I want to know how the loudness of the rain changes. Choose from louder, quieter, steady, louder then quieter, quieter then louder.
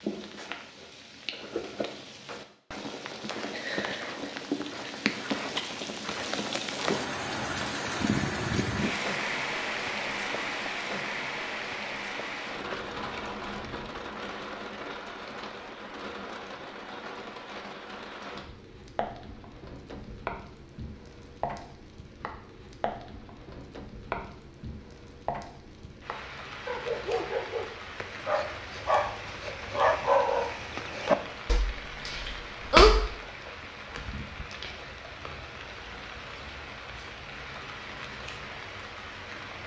quieter.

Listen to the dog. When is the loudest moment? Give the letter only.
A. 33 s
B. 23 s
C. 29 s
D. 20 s
A.